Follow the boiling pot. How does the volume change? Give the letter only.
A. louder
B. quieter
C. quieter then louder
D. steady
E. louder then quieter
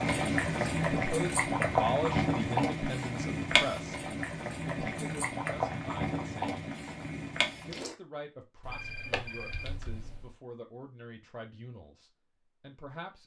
B.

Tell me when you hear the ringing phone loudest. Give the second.
9 s.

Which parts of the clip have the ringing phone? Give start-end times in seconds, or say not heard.
8.6-10.3.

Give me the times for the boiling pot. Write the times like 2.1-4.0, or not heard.
0.0-8.0.